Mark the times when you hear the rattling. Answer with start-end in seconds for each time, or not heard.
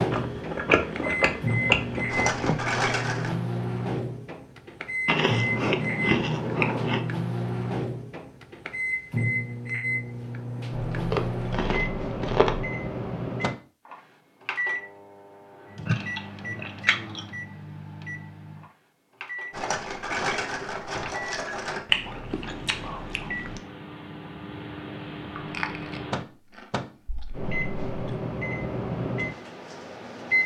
2.0-3.4, 19.5-21.9.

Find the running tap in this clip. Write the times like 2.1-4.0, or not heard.
not heard.